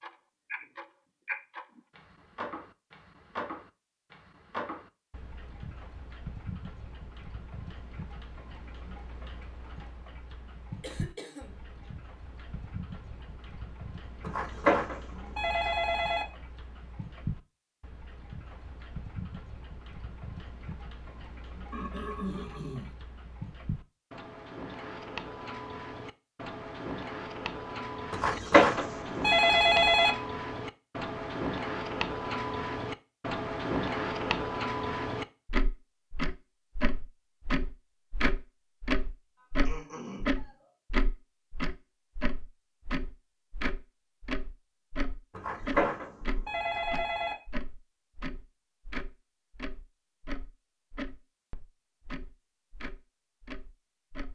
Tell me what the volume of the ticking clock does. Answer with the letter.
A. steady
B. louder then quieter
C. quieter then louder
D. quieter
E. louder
B.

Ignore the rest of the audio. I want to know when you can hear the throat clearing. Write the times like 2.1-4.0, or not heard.
10.8-11.6, 21.7-22.9, 39.4-40.7.